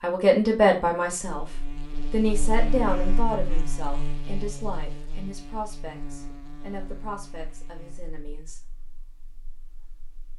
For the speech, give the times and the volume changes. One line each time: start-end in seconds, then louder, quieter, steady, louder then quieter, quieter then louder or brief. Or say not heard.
0.0-1.4 brief
2.1-8.6 quieter.